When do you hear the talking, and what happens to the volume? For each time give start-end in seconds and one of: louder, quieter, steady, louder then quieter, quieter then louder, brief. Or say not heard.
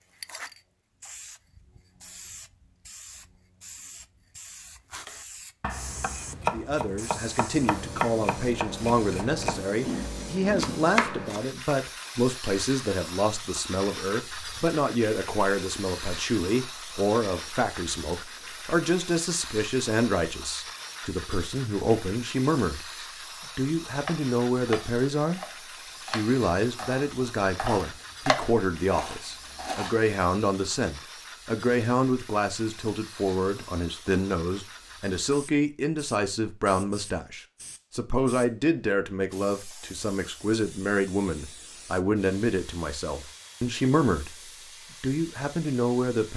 6.5-22.9 steady
23.6-25.4 brief
26.1-46.3 steady.